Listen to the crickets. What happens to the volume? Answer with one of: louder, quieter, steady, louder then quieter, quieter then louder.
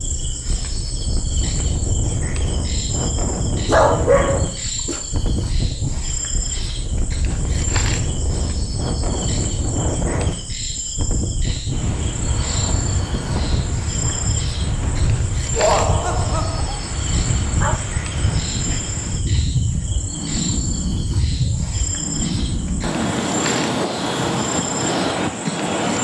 steady.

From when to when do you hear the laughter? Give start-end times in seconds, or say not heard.
15.6-16.8.